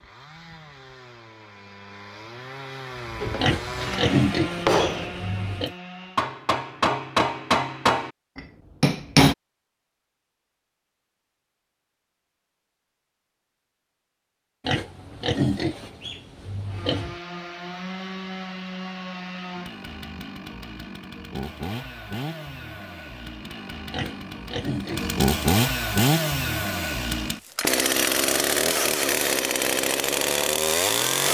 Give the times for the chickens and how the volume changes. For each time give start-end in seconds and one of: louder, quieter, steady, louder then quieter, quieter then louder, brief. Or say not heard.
not heard.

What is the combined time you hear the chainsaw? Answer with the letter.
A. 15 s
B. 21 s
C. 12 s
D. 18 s
B.